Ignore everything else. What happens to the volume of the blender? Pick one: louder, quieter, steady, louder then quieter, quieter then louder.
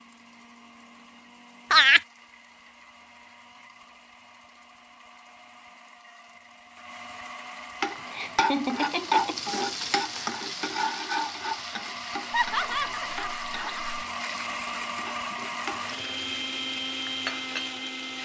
louder.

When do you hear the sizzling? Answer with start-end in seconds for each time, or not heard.
7.8-18.1.